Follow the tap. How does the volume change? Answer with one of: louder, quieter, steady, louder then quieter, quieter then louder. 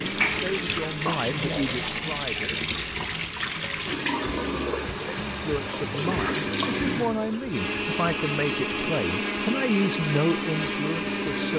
quieter.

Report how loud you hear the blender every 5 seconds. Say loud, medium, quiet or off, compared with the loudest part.
medium, loud, loud.